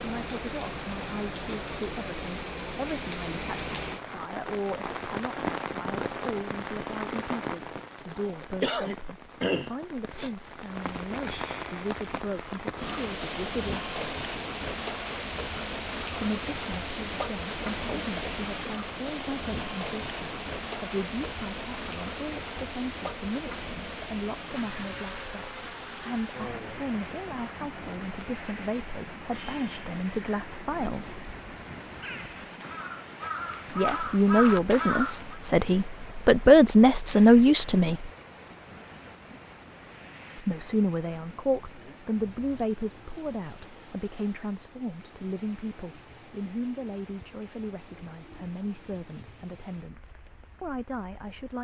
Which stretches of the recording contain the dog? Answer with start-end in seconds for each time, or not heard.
not heard.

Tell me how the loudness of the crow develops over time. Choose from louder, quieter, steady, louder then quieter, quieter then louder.
louder.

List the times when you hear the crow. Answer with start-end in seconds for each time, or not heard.
30.1-35.4.